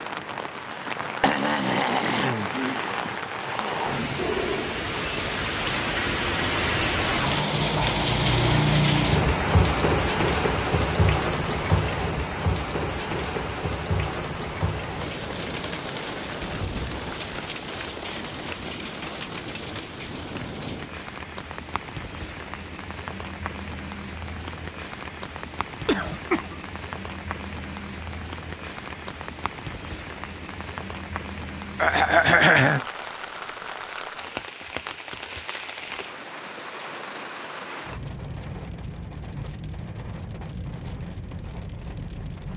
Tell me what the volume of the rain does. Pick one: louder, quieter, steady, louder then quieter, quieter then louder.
quieter.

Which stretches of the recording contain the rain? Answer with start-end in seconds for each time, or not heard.
0.0-42.5.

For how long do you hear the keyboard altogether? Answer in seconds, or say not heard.
not heard.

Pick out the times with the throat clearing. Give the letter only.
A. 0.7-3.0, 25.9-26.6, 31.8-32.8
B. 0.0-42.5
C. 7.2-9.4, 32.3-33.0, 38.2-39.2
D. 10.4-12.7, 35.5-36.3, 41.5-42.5
A.